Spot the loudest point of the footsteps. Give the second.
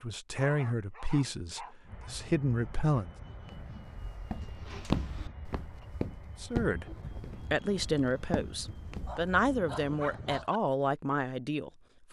5 s.